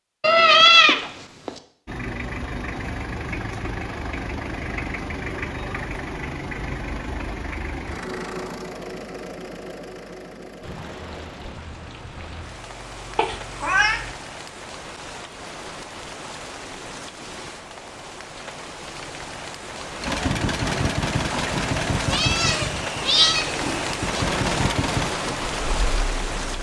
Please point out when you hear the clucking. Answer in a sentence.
The clucking can't be heard in this clip.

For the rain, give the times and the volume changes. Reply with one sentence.
You can hear the rain from 10.6 to 26.5 s, getting louder.